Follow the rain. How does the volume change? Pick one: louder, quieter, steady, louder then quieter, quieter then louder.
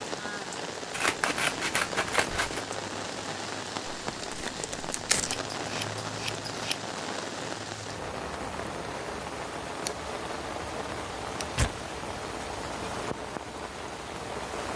steady.